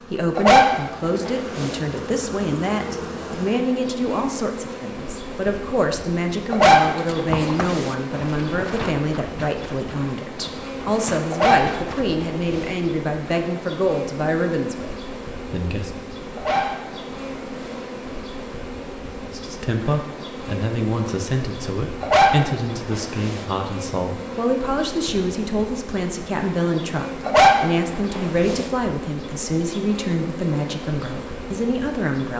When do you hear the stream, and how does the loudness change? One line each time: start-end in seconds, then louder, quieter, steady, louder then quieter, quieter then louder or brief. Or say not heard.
not heard.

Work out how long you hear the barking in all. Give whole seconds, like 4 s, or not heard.
9 s.